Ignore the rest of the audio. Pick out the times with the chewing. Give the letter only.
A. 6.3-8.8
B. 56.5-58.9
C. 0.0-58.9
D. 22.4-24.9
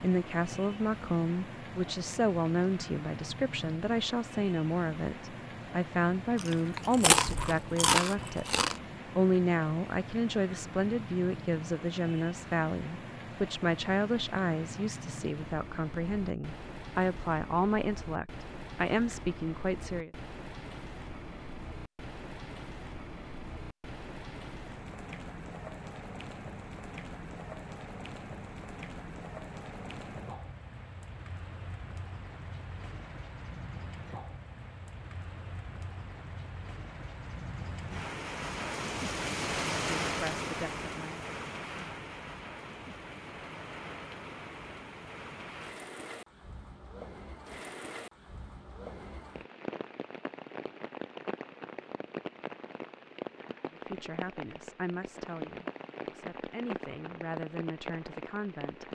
A.